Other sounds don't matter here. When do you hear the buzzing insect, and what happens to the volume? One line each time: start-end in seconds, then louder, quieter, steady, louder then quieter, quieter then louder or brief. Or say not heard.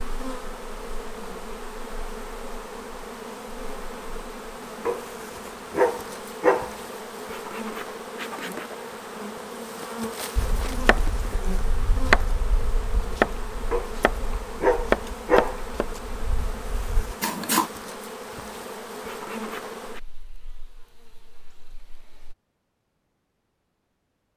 0.0-22.4 steady.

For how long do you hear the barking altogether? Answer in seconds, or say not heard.
4 s.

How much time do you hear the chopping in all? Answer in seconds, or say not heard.
7 s.